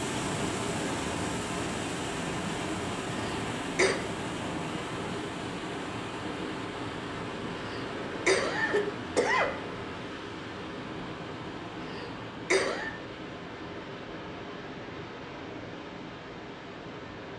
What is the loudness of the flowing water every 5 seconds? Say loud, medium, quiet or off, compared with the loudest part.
loud, loud, medium, medium.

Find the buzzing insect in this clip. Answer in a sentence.
The buzzing insect can't be heard in this clip.